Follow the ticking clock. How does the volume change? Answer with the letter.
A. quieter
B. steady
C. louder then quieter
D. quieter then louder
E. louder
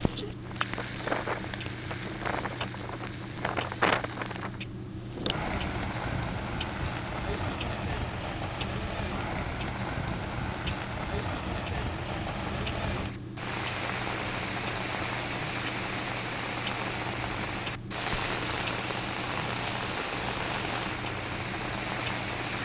B.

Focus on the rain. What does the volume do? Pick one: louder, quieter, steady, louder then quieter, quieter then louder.
steady.